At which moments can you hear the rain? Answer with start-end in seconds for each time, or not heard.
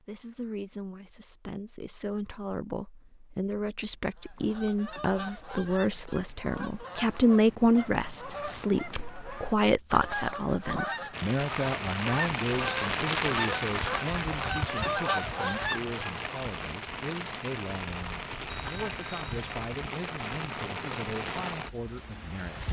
11.1-22.6.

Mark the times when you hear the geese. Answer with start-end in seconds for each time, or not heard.
4.0-16.2.